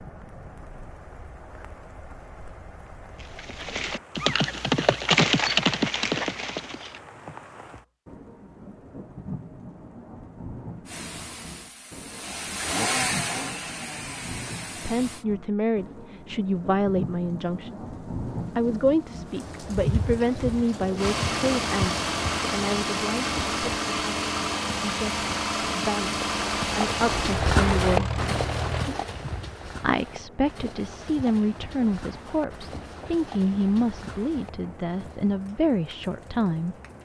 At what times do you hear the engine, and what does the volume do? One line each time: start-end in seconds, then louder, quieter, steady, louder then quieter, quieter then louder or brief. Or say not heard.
10.8-15.2 louder then quieter
20.9-28.9 steady.